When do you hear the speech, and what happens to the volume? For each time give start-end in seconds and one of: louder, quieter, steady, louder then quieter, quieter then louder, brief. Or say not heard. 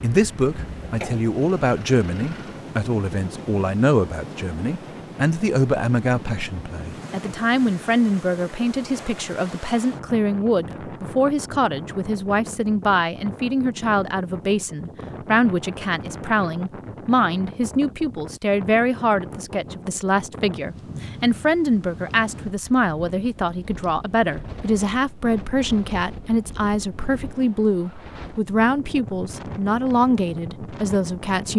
0.0-31.5 steady.